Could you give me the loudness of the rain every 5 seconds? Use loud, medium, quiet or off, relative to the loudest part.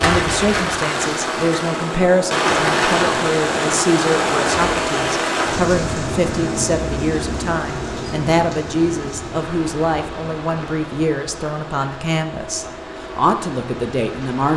loud, medium, quiet.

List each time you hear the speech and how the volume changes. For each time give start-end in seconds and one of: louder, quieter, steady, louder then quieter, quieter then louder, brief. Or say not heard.
0.0-14.5 steady.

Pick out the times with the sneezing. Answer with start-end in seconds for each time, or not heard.
not heard.